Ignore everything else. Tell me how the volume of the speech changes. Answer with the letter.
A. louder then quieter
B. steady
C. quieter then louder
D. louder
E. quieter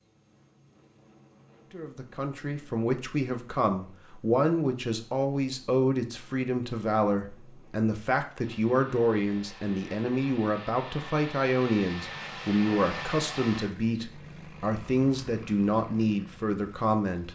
B.